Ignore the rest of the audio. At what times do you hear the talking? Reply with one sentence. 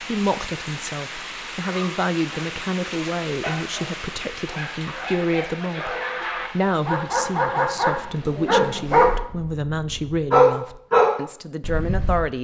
You can hear the talking from 0.0 to 12.3 s.